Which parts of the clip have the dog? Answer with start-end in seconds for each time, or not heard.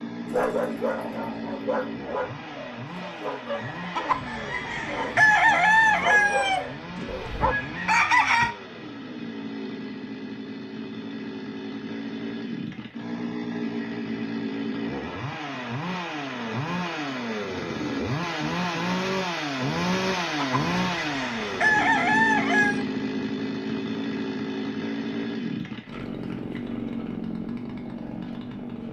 0.3-7.5.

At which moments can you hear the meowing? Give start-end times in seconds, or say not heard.
not heard.